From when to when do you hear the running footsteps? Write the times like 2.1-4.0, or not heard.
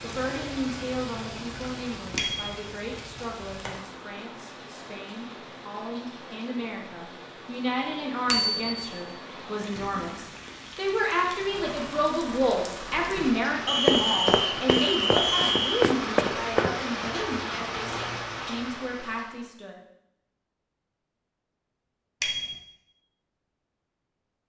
13.8-18.4.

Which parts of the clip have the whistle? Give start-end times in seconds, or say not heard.
13.7-15.9.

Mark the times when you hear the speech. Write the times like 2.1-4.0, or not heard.
0.0-19.8.